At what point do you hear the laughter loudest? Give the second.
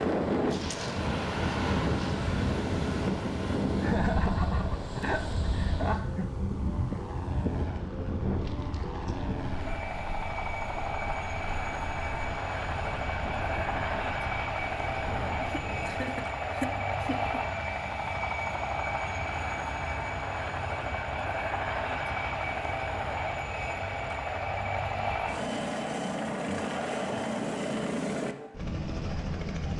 4 s.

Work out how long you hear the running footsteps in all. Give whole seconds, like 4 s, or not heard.
not heard.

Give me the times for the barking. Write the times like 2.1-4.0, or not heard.
not heard.